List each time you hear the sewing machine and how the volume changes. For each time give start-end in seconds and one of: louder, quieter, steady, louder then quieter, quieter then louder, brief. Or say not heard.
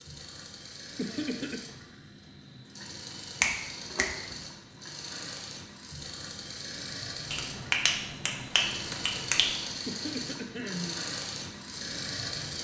0.0-12.6 louder.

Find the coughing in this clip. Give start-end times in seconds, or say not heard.
0.9-1.7, 9.8-11.0.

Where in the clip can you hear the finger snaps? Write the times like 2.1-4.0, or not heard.
3.4-4.3, 7.3-9.6.